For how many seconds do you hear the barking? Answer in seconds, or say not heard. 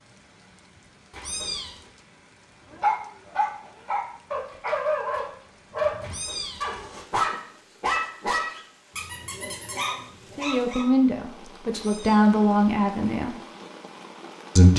8 s.